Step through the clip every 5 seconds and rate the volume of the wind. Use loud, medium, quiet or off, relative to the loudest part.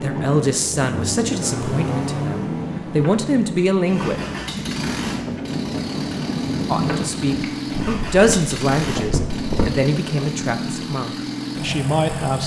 loud, loud, off.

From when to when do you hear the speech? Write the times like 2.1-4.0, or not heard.
0.0-4.2, 6.7-12.4.